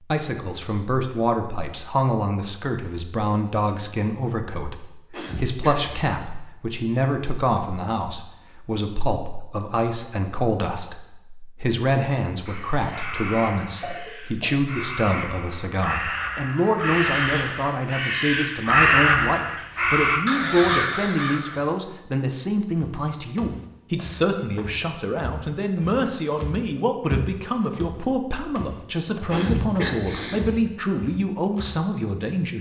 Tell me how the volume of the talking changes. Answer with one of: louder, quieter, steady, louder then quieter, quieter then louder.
steady.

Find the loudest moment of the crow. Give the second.
19 s.